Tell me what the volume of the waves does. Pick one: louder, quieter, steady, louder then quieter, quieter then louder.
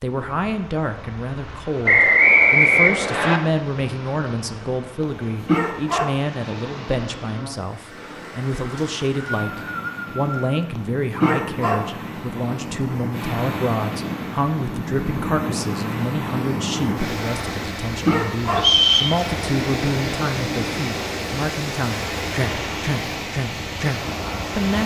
louder.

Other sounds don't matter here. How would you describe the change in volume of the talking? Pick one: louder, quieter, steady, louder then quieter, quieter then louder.
steady.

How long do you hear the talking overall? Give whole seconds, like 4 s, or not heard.
25 s.